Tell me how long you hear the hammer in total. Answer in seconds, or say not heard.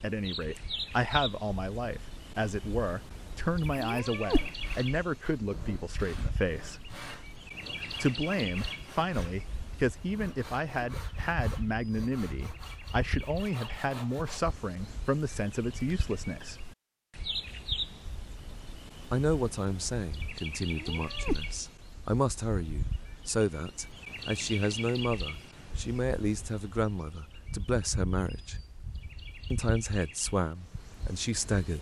not heard.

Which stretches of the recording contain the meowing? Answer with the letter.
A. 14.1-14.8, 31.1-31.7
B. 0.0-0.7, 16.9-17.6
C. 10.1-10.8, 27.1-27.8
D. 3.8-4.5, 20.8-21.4
D.